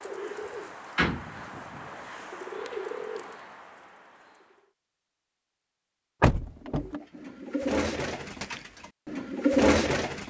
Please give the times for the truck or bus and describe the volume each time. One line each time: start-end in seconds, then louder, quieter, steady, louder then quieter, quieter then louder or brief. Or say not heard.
not heard.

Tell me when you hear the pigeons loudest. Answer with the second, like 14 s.
10 s.